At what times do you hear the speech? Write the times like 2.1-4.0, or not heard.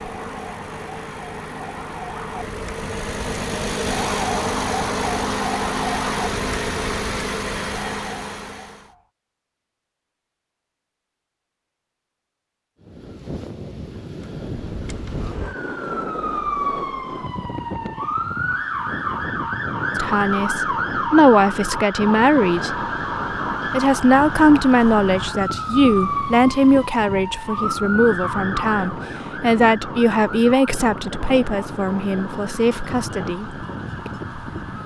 19.9-22.8, 23.7-33.5.